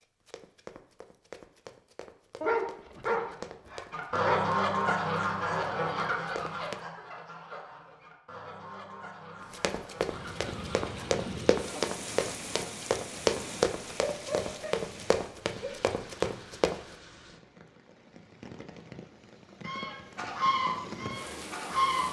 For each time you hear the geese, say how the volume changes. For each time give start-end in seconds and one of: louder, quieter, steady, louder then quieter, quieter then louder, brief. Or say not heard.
3.9-11.2 quieter
19.6-22.0 brief.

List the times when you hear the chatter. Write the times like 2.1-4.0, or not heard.
not heard.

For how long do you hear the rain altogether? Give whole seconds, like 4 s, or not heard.
12 s.